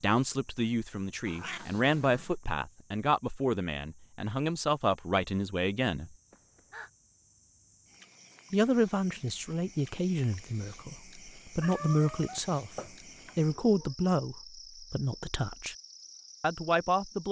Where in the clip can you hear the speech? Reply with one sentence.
You can hear the speech from 0.0 to 6.2 s, from 8.5 to 12.7 s, from 13.3 to 15.8 s and from 16.4 to 17.2 s.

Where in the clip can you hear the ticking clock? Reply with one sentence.
You can't hear the ticking clock here.